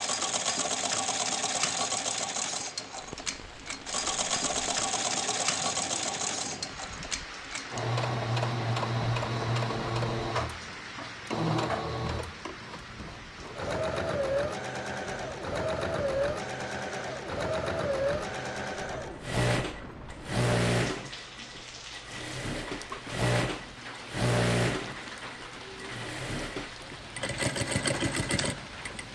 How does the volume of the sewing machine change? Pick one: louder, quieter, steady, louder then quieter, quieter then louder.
steady.